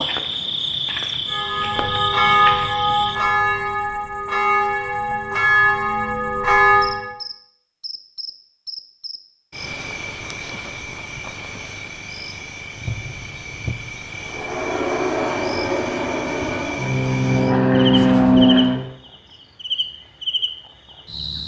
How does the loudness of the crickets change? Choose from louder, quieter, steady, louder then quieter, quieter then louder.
quieter then louder.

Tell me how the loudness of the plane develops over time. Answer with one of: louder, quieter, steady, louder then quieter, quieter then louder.
louder.